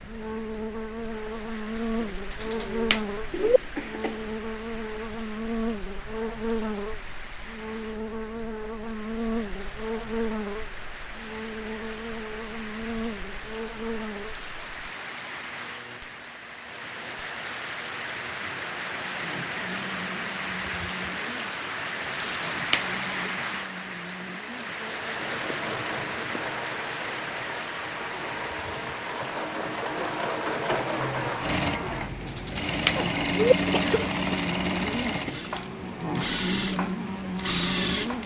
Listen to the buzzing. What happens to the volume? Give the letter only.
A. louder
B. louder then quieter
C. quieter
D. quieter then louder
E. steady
D.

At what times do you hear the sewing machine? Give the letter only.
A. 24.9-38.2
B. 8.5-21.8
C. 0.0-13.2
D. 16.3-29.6
A.